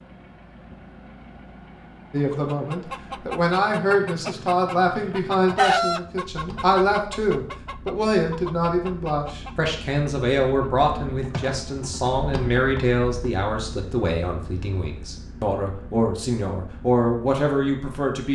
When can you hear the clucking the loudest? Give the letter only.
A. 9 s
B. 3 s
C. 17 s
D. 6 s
D.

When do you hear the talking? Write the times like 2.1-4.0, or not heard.
2.1-18.2.